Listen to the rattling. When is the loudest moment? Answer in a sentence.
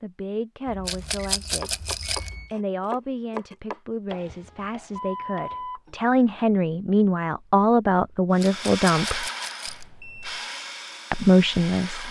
The loudest moment of the rattling is at 1 second.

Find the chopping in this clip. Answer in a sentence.
The chopping can be heard from 1.6 to 6.0 s.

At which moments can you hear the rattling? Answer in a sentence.
The rattling can be heard from 0.8 to 2.3 s and from 8.4 to 9.8 s.